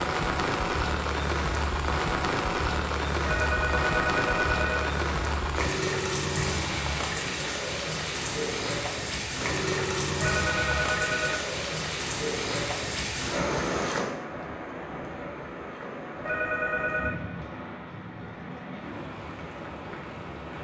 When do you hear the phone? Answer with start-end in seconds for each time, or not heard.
3.2-5.0, 10.2-11.4, 16.2-17.1.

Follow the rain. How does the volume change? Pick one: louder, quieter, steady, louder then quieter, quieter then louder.
quieter.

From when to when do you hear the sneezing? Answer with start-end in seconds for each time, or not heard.
not heard.